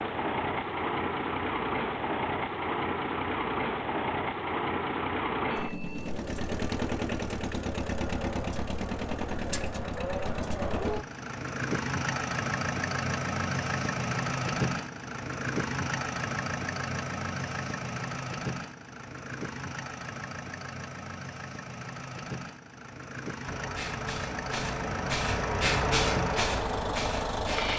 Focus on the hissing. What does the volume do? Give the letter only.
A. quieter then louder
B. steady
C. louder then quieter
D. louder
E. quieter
C.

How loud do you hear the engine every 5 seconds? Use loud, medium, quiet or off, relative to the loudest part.
loud, loud, loud, loud, medium, loud.